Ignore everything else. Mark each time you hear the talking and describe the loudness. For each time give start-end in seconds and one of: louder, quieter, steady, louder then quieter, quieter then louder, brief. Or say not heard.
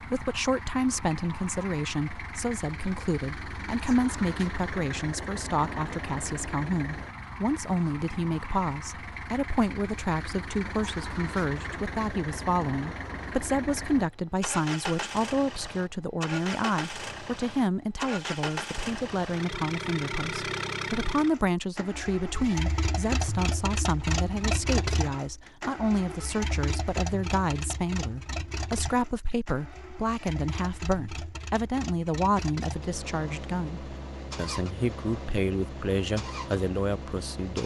0.0-37.6 steady.